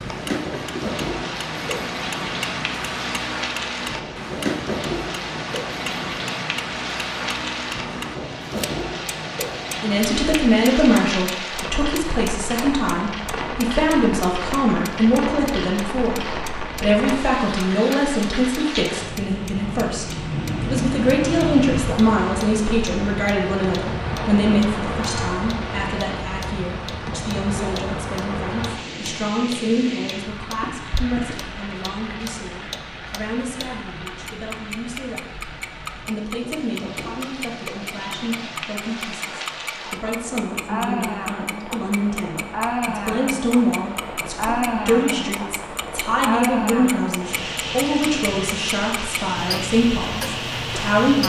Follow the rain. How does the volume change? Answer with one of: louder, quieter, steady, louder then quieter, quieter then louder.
quieter then louder.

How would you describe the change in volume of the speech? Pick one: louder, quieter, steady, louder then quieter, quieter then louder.
quieter then louder.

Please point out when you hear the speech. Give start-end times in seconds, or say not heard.
9.8-51.2.